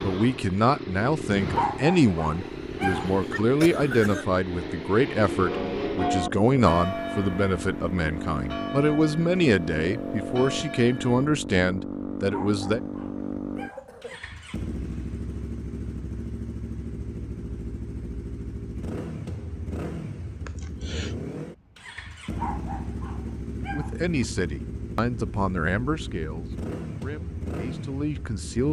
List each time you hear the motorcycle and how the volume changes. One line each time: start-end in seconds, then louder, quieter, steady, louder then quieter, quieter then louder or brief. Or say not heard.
0.0-28.6 steady.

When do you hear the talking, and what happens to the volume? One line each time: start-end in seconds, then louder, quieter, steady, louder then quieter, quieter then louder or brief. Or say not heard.
0.0-12.8 steady
23.6-28.6 quieter then louder.